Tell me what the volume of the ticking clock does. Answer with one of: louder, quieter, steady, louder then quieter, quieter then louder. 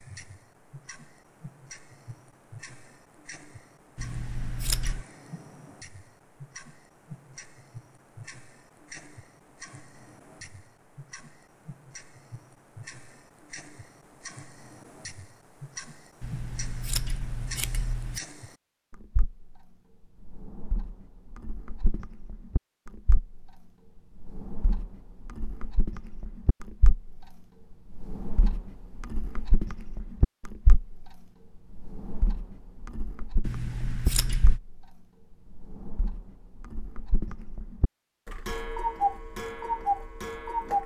louder.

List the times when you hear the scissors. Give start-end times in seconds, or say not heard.
4.0-5.0, 16.2-18.2, 33.4-34.6.